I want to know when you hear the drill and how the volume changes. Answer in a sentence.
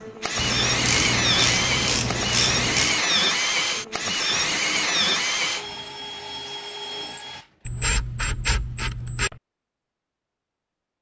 The drill can be heard from 0.0 to 7.8 s, getting quieter.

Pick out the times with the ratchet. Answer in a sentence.
You can hear the ratchet from 0.3 to 3.0 s and from 7.7 to 9.4 s.